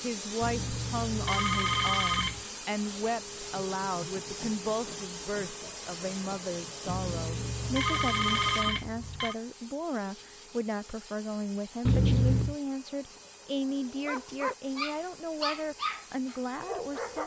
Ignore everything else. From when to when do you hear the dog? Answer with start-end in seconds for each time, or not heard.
13.6-17.2.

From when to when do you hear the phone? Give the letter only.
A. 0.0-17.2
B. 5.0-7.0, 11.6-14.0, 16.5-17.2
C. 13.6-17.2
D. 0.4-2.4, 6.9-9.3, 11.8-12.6
D.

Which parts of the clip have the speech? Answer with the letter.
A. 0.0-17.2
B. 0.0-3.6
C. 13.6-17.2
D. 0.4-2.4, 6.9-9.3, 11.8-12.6
A.